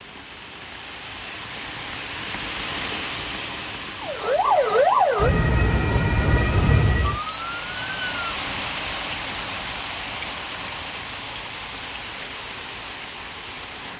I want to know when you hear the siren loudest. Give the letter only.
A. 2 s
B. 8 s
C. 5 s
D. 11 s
C.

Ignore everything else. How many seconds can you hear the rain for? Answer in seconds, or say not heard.
14 s.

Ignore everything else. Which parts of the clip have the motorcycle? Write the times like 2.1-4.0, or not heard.
not heard.